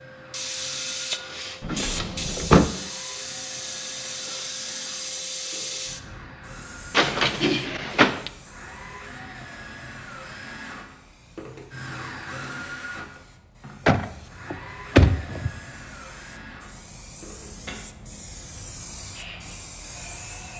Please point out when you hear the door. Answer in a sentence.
You can hear the door from 1.6 to 2.7 s, from 6.9 to 8.3 s and from 13.8 to 15.5 s.